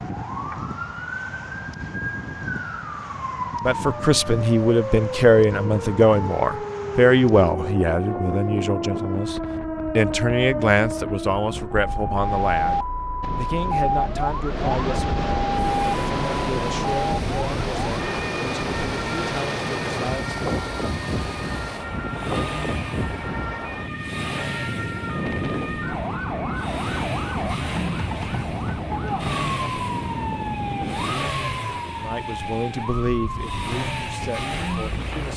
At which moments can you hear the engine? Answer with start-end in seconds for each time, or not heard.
15.6-35.3.